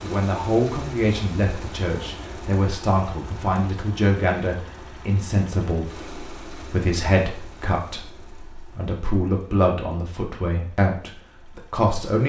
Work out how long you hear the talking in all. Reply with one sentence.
You can hear the talking for 12 seconds altogether.